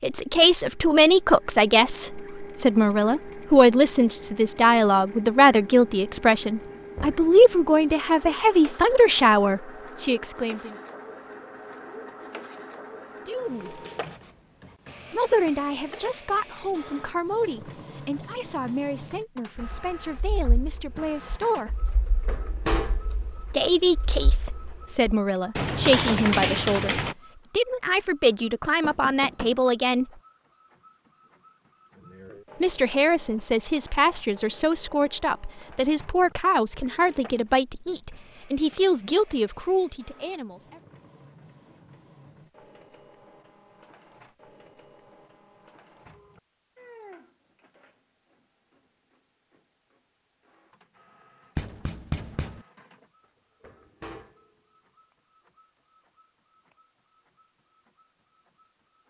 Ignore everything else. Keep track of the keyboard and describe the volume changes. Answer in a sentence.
The loudness of the keyboard goes up.